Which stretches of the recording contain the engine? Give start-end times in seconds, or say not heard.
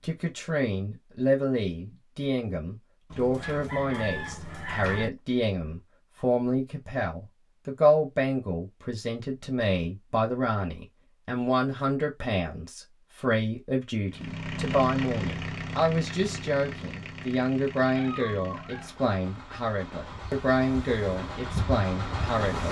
14.1-22.6.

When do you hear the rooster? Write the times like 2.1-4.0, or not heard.
3.1-5.1.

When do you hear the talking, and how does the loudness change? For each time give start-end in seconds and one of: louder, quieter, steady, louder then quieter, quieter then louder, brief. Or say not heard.
0.0-22.6 steady.